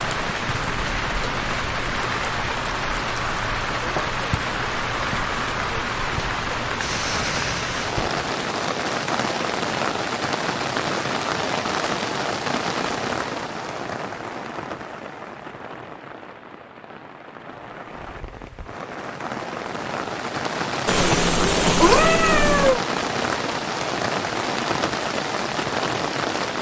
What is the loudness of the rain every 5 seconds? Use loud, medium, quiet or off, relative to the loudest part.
loud, loud, loud, medium, loud, loud.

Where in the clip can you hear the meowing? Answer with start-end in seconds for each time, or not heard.
20.9-22.8.